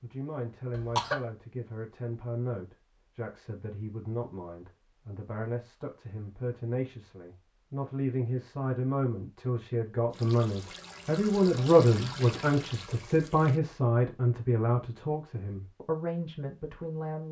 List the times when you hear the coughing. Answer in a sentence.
You can hear the coughing from 0.7 to 1.2 s.